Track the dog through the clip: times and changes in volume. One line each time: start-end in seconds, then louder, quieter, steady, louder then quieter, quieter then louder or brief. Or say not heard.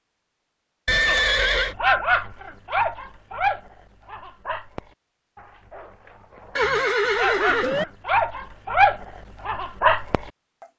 1.1-10.3 quieter then louder.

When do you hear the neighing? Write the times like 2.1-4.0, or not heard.
0.8-1.8, 6.5-7.8.